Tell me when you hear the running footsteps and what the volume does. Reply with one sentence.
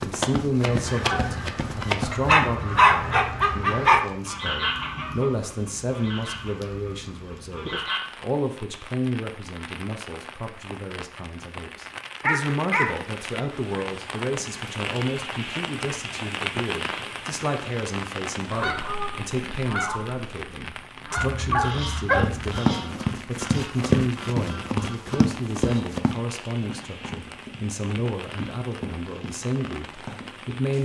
The running footsteps can be heard briefly from 0.0 to 2.5 s; and from 22.1 to 30.6 s, getting quieter.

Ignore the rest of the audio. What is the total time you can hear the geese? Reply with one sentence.
You can hear the geese for 15 seconds altogether.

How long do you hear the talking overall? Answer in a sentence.
You can hear the talking for 31 seconds altogether.